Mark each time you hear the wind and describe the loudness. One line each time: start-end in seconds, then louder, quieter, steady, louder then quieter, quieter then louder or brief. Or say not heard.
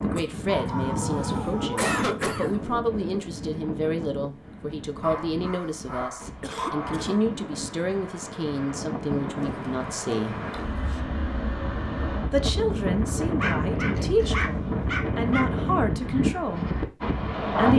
0.0-17.7 quieter then louder.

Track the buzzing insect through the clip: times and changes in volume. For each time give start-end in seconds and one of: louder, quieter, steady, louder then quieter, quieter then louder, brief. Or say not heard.
not heard.